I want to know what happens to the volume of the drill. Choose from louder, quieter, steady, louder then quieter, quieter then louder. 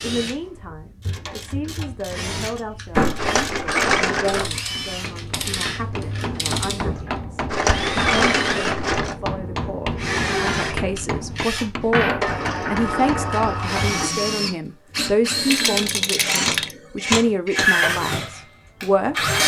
louder.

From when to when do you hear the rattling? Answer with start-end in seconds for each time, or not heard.
3.1-4.5, 7.5-9.2, 15.4-16.8.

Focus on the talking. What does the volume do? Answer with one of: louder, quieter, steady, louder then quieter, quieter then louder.
louder.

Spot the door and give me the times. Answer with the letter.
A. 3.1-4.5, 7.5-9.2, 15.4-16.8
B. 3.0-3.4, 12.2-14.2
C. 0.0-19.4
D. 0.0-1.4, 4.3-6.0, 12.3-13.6
B.